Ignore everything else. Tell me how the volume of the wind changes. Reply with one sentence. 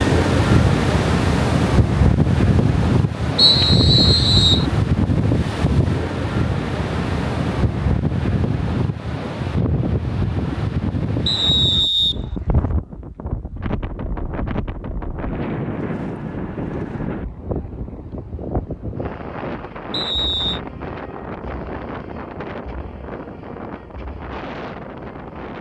The loudness of the wind goes down.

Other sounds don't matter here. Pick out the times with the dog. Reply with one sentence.
You can't hear the dog here.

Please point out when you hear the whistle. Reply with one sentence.
The whistle can be heard from 3.4 to 4.7 s, from 11.2 to 12.7 s and from 19.9 to 20.6 s.